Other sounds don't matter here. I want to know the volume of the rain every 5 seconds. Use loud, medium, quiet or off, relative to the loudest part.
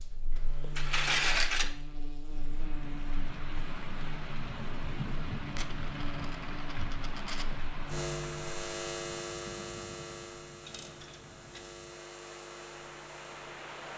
loud, loud, medium.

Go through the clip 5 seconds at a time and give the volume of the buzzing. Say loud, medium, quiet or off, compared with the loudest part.
medium, loud, medium.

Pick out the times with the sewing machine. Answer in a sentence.
The sewing machine can't be heard in this clip.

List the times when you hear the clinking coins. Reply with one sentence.
The clinking coins can be heard from 0.3 to 1.8 s, from 5.5 to 7.5 s and from 10.7 to 11.8 s.